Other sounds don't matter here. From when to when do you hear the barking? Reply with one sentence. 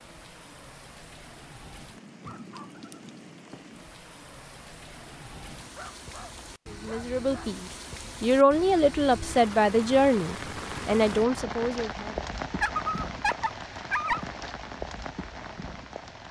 The barking can be heard from 2.2 to 3.6 s, from 5.6 to 7.5 s and from 12.6 to 14.2 s.